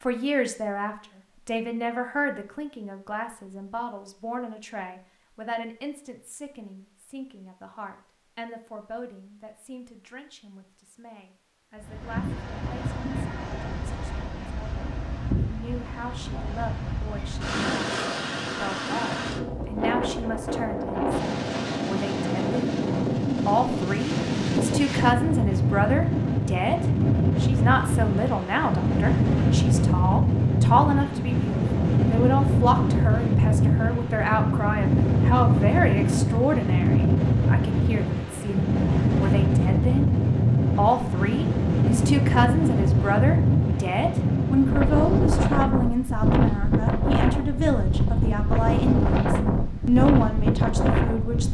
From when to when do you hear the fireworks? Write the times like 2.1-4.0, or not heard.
not heard.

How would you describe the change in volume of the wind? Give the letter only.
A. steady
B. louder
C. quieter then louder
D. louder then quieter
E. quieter
B.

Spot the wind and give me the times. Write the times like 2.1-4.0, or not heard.
11.8-51.4.